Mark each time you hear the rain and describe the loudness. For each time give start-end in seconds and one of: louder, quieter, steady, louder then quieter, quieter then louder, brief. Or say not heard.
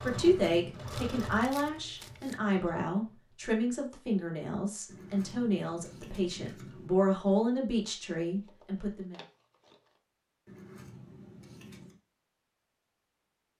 not heard.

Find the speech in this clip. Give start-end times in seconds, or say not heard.
0.0-9.2.